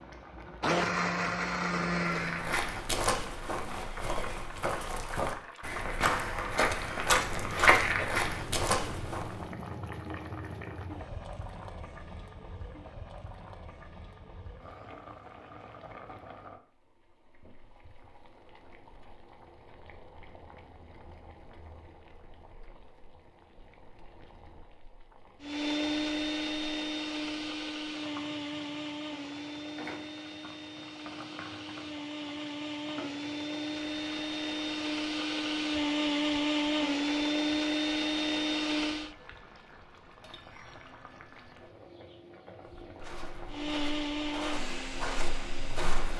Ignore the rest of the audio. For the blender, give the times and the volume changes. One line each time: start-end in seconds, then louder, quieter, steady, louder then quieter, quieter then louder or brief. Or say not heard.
0.1-2.5 brief
25.4-39.1 quieter then louder
43.5-46.1 brief.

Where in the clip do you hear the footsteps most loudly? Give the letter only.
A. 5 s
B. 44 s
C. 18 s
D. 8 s
D.